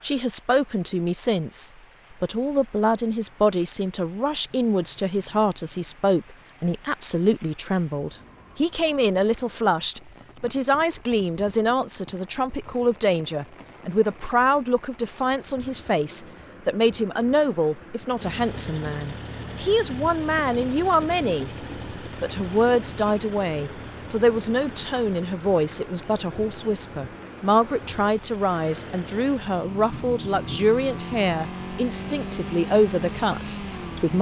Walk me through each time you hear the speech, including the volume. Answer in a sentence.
The speech can be heard from 0.0 to 34.1 s, at a steady volume.